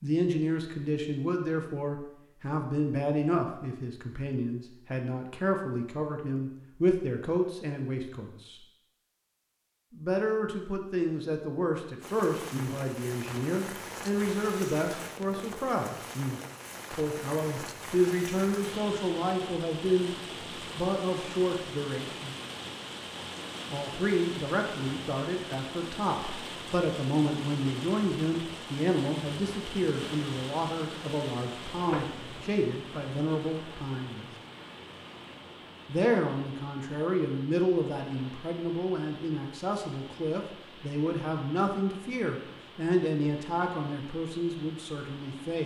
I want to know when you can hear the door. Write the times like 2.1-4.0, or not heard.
31.9-32.5.